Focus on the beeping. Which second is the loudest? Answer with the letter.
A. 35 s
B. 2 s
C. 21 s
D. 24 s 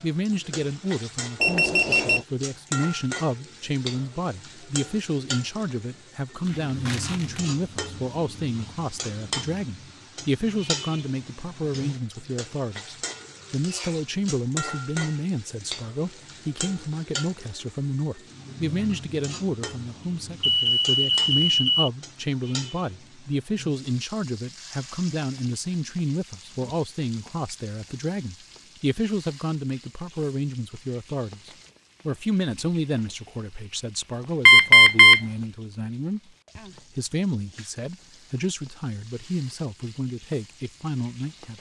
A.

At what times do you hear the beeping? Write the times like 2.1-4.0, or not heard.
1.4-2.2, 20.4-21.9, 34.5-35.2.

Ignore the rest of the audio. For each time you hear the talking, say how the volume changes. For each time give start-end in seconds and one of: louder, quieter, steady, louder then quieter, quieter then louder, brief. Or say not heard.
0.0-41.5 steady.